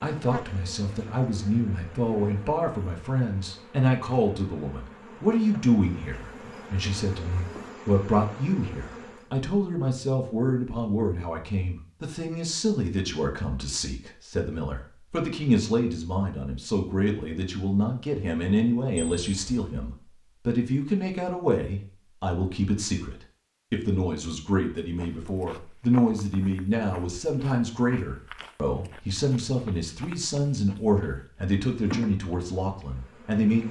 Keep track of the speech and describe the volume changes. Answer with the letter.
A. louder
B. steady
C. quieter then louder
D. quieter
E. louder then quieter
B.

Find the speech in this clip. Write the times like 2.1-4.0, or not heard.
0.0-33.6.